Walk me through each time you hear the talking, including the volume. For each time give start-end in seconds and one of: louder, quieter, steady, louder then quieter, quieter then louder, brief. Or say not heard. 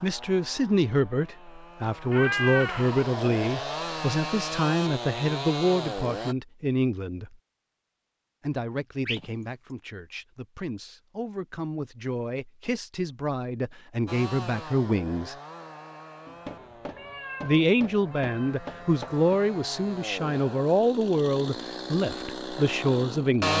0.0-7.3 steady
8.4-15.3 louder
17.4-23.5 steady.